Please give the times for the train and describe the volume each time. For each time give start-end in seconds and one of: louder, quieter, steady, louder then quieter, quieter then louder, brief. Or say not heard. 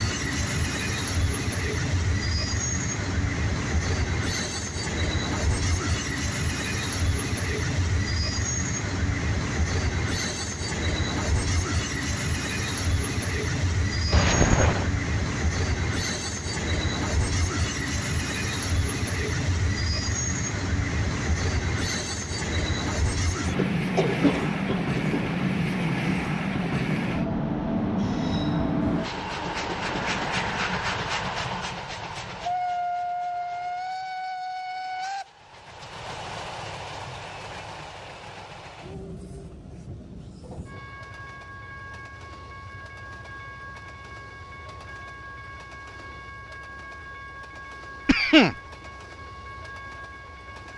0.0-50.7 quieter.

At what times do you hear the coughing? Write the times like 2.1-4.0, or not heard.
14.1-14.9, 23.6-25.3, 48.0-48.5.